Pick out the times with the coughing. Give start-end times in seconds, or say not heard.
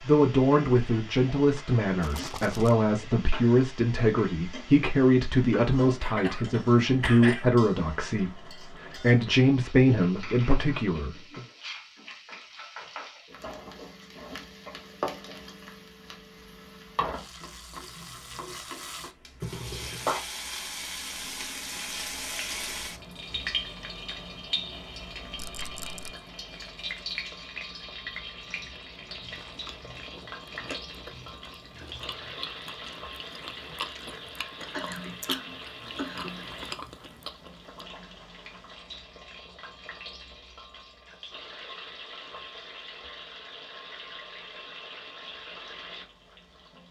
6.0-7.6, 19.4-20.2, 34.7-36.5.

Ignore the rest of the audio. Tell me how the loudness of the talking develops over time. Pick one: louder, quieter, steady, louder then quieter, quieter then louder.
steady.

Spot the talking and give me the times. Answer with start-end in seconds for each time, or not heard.
0.0-11.4.